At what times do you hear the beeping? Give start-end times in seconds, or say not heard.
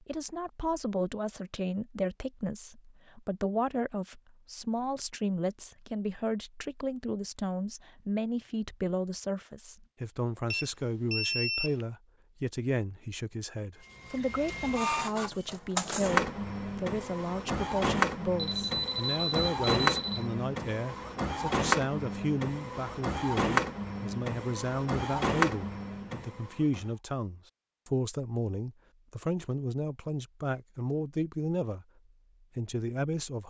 10.5-11.8, 18.4-20.2.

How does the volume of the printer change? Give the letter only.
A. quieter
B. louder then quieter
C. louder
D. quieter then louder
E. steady
E.